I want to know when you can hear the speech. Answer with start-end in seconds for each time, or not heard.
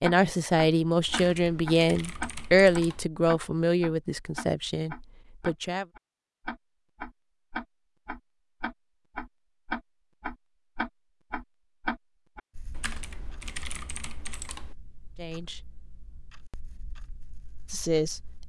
0.0-5.8, 15.2-15.6, 17.7-18.2.